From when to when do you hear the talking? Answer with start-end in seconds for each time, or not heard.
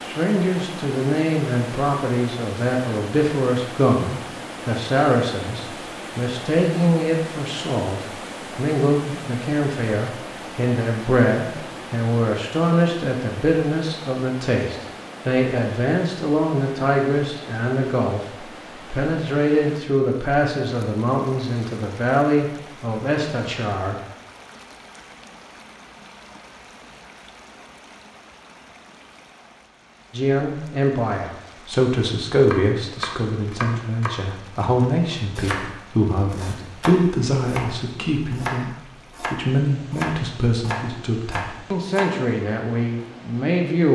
0.0-23.9, 30.1-43.9.